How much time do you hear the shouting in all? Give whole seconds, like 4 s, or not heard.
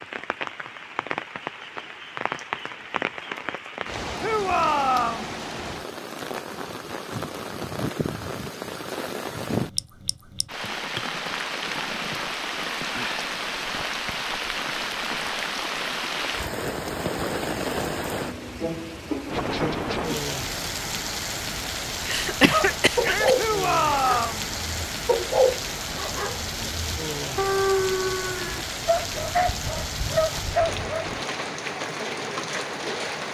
2 s.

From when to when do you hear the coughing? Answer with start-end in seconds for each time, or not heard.
22.1-23.4.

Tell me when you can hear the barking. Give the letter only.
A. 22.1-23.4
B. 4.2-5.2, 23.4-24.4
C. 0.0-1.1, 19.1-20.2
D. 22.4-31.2
D.